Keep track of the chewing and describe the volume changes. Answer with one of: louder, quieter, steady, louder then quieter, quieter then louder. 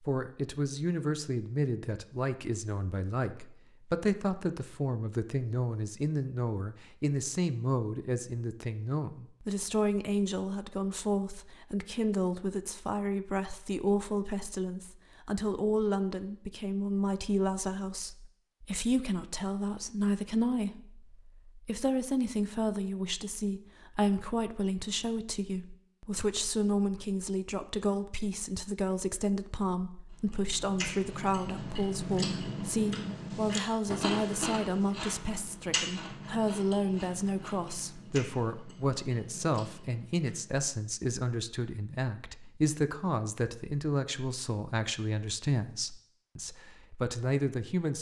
quieter.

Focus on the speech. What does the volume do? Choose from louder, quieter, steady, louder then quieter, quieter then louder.
steady.